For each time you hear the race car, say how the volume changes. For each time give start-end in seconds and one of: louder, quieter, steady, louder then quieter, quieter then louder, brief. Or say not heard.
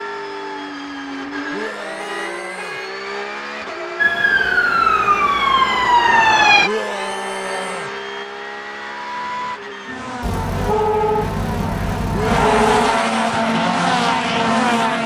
0.0-15.0 louder.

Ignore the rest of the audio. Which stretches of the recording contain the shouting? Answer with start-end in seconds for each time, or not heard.
1.5-2.8, 6.6-7.9, 12.1-13.4.